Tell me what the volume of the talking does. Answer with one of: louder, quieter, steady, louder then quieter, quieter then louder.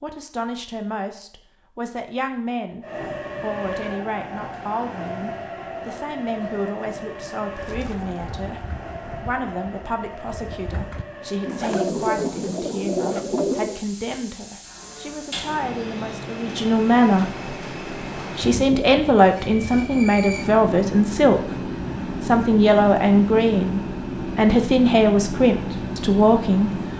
louder.